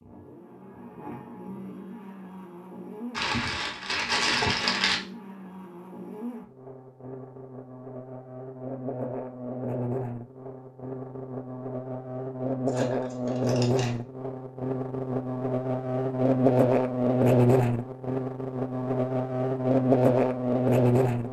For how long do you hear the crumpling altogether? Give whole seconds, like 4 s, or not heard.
3 s.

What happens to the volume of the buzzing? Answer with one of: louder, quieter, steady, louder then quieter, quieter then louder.
louder.